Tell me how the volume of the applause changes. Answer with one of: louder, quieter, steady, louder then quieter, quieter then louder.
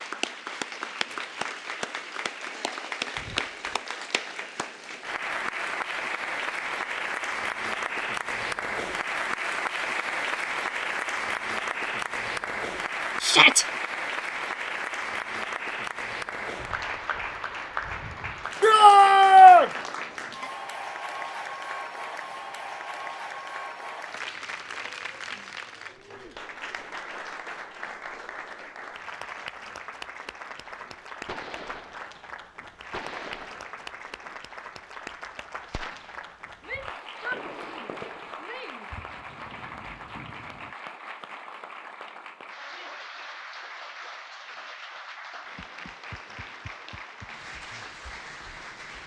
quieter.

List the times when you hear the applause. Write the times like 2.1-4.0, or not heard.
0.0-49.0.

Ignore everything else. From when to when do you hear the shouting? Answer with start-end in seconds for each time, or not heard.
13.2-13.7, 18.6-19.7, 36.6-38.9.